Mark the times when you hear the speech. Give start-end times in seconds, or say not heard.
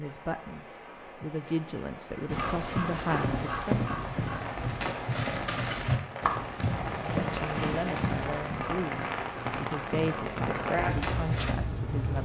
0.0-4.1, 7.2-12.1.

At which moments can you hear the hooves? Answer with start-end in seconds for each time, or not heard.
2.2-11.6.